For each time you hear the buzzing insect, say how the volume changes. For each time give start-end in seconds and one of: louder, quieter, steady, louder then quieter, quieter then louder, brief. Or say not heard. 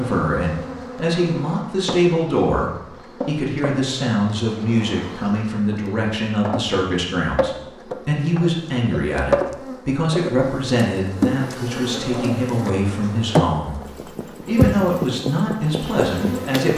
0.0-16.7 louder.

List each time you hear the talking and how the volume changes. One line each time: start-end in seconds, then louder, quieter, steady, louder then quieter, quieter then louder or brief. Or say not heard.
0.0-16.7 steady.